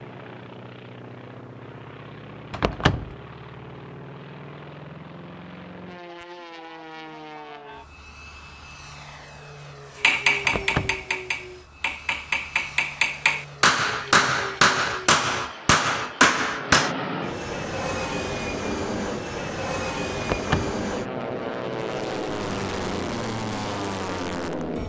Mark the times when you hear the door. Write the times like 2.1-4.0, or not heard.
2.5-3.1, 10.4-11.1, 20.2-20.8.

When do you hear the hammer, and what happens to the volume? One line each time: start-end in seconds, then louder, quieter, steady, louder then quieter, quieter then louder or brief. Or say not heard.
10.0-16.9 louder.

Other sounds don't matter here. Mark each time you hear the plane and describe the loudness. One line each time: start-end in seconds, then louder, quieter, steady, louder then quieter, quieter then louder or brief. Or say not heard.
0.0-24.8 louder.